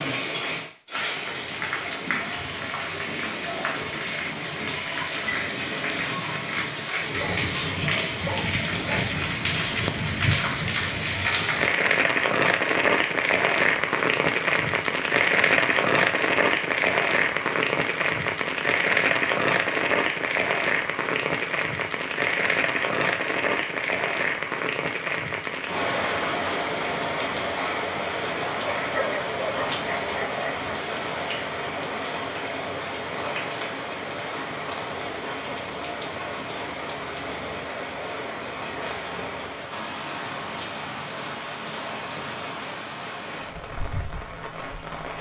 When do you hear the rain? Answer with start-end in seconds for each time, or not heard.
0.0-45.1.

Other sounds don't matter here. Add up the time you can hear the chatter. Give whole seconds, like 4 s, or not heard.
not heard.